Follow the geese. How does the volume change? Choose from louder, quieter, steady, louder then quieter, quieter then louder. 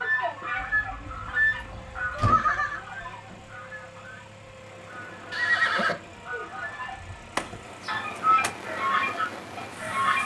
quieter then louder.